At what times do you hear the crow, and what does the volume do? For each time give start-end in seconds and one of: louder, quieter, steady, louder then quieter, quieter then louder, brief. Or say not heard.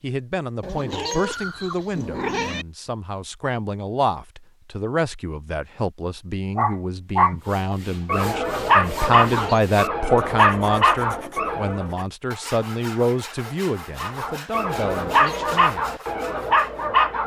not heard.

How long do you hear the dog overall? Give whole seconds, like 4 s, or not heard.
9 s.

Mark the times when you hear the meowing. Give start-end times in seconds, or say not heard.
0.6-2.6, 9.2-9.7, 14.9-15.6.